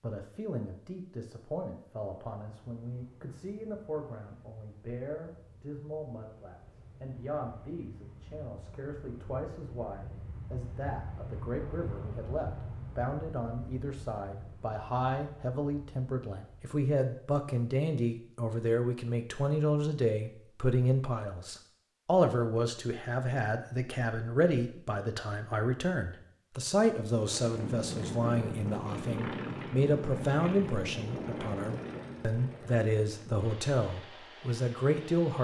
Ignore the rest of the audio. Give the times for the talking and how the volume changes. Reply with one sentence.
The talking can be heard from 0.0 to 35.3 s, getting louder.